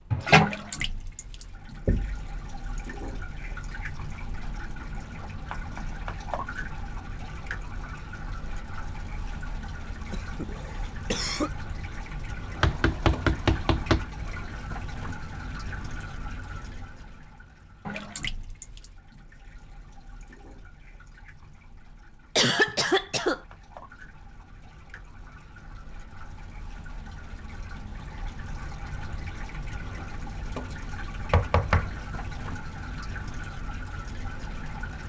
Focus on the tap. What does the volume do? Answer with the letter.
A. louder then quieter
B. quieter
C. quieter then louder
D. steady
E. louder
C.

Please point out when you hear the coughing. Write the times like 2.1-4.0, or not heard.
10.1-11.5, 22.4-23.4.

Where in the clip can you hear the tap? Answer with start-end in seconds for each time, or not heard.
0.0-35.0.